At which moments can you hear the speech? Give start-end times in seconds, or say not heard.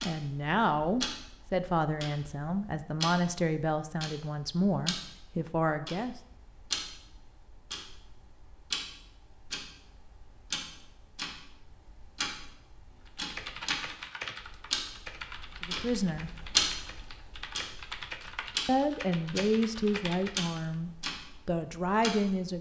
0.0-6.2, 15.6-16.3, 18.6-22.5.